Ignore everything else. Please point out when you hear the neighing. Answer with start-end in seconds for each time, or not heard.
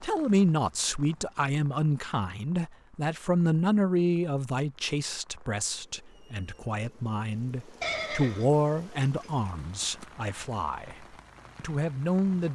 7.8-9.3.